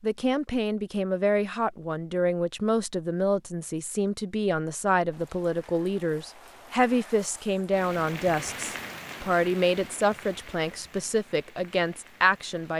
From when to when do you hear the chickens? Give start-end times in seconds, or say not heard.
not heard.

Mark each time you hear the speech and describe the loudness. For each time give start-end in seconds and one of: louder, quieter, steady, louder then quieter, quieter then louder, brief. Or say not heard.
0.0-12.7 steady.